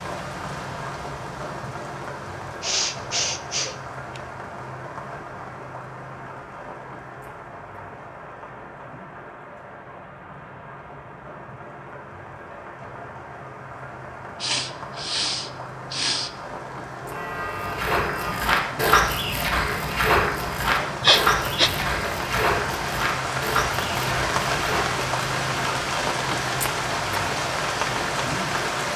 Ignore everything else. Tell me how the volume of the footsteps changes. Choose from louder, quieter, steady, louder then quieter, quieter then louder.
quieter.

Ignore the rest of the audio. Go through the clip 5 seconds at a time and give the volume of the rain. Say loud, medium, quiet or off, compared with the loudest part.
medium, quiet, quiet, medium, loud, loud.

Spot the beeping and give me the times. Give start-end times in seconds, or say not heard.
17.0-18.4.